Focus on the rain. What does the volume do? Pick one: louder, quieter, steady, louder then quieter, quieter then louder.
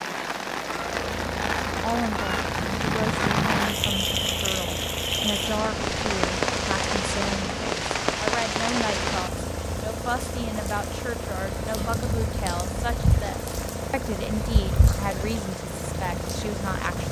quieter.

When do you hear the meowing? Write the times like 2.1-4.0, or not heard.
not heard.